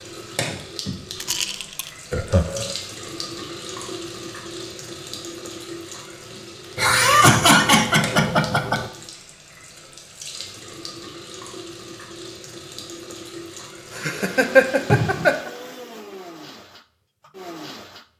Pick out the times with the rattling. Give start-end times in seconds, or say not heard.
1.1-1.9.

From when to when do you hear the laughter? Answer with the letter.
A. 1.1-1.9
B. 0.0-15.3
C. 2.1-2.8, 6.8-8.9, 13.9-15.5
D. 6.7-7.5
C.